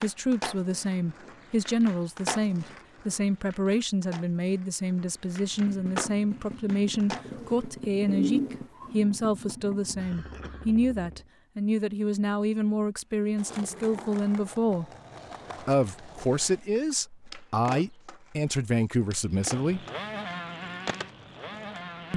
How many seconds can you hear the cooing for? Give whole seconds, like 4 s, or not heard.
2 s.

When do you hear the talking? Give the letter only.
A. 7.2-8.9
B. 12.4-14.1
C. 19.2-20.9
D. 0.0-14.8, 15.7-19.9
D.